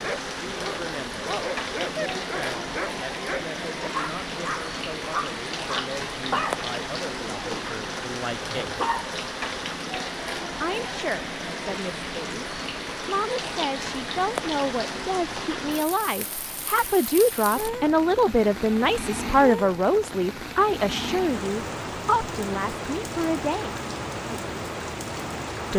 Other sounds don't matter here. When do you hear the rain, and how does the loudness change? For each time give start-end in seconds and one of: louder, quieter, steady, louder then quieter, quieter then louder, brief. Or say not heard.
0.0-25.7 steady.